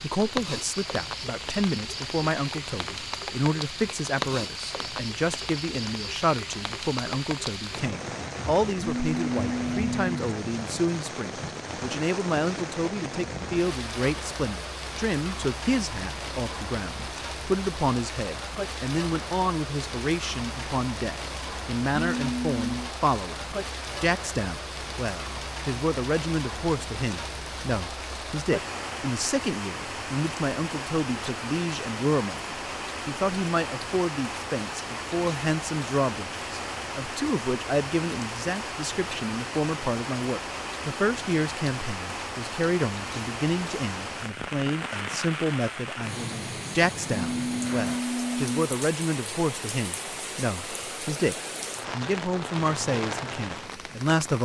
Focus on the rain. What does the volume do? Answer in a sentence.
The loudness of the rain stays about the same.